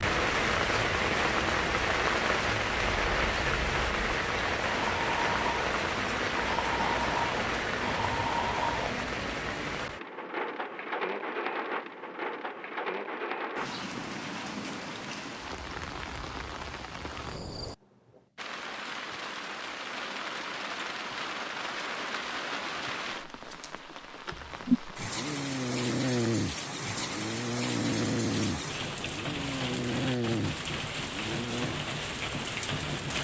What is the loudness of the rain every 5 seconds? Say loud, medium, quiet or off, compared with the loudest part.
loud, loud, medium, medium, medium, medium, medium.